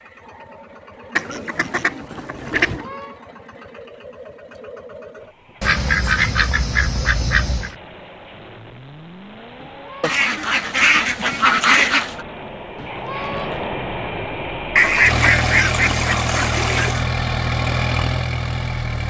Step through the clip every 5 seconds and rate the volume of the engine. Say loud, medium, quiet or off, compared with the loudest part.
quiet, quiet, medium, loud.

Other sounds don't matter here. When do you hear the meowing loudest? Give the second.
13 s.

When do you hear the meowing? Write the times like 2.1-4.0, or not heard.
2.6-3.2, 9.6-10.1, 12.8-13.7.